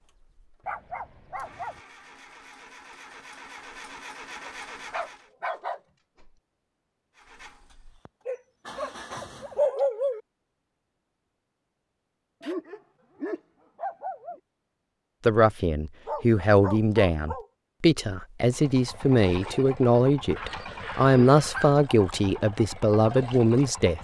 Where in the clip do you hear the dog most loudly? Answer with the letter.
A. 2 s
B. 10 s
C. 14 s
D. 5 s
B.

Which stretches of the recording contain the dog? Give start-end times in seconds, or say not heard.
0.7-1.8, 4.4-6.3, 8.2-10.2, 12.4-14.4, 16.1-17.4, 20.4-21.8.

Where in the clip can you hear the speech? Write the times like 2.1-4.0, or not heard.
15.2-23.9.